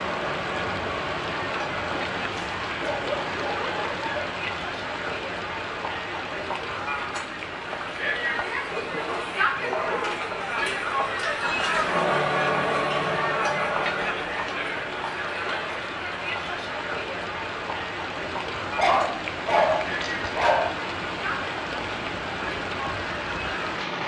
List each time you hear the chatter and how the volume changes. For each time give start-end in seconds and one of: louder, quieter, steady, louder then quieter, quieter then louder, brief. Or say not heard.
0.0-23.9 louder then quieter.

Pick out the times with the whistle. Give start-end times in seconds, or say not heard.
not heard.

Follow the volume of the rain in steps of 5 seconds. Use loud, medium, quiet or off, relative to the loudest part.
loud, medium, medium, loud, loud.